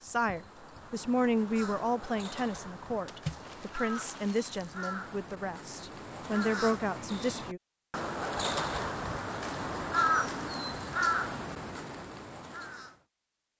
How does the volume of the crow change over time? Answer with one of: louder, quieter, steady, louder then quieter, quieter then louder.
louder.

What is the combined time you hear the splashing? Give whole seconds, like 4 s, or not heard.
2 s.